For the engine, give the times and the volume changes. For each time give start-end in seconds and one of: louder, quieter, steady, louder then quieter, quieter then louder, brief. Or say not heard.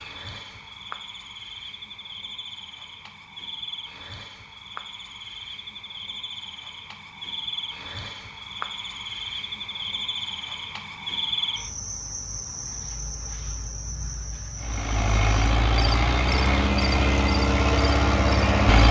14.6-18.8 steady.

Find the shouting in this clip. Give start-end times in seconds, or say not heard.
not heard.